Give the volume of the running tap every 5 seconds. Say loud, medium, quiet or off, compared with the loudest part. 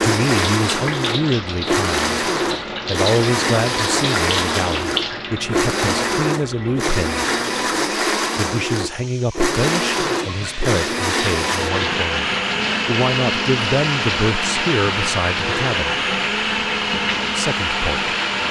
loud, medium, loud, loud.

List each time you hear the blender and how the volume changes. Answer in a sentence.
You can hear the blender from 0.0 to 18.4 s, at a steady volume.